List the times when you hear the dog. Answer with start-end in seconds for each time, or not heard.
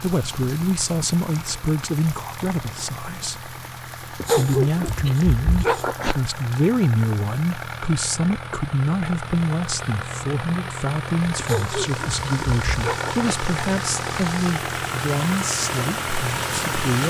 4.2-6.2, 11.3-13.3.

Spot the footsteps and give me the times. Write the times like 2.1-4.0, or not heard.
not heard.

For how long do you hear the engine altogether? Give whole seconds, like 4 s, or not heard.
17 s.